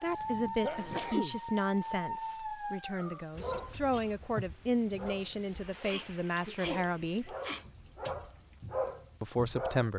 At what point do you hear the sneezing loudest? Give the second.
1 s.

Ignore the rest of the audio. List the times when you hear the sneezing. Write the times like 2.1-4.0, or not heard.
0.1-1.4, 5.7-7.7.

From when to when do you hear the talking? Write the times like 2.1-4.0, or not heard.
0.0-7.3, 9.2-9.9.